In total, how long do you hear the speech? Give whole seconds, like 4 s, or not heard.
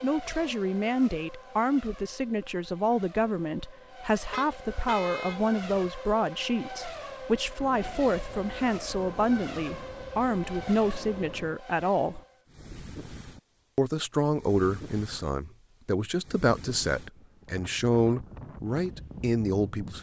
18 s.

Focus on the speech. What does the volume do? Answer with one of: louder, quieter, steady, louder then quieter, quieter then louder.
steady.